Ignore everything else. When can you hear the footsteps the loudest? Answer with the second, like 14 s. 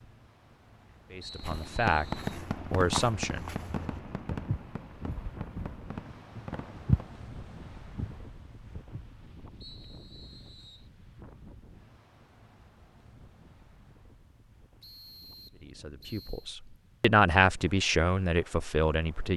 7 s.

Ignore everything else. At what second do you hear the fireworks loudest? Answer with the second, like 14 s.
2 s.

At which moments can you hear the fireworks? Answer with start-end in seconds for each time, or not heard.
1.4-7.2.